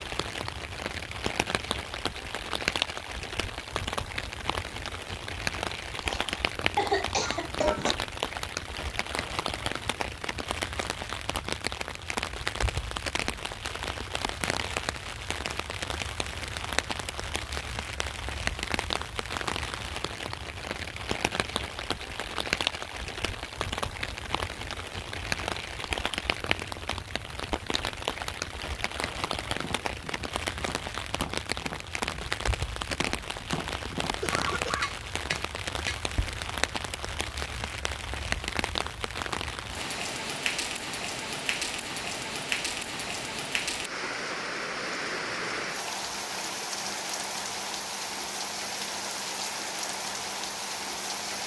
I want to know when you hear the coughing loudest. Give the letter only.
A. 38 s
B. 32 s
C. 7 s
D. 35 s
C.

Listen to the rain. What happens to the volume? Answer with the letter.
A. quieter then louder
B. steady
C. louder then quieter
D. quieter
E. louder
B.